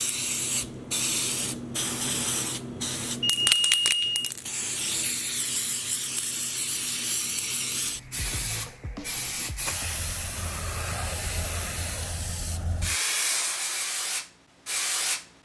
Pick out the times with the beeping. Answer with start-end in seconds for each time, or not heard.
3.2-4.2.